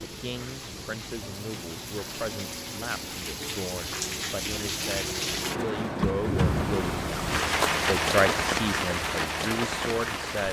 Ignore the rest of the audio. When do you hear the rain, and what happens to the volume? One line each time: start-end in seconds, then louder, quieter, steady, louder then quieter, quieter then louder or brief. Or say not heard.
0.0-10.4 louder.